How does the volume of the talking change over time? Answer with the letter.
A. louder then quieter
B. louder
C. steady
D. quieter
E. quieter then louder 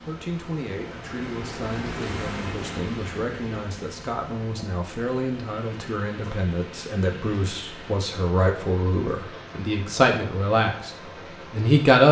B.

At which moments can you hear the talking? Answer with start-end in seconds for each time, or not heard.
0.0-12.0.